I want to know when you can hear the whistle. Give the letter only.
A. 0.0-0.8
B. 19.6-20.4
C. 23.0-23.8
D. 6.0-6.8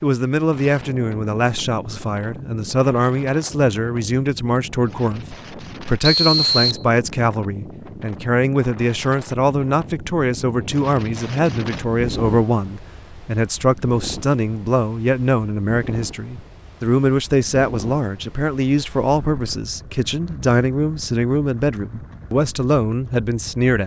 D.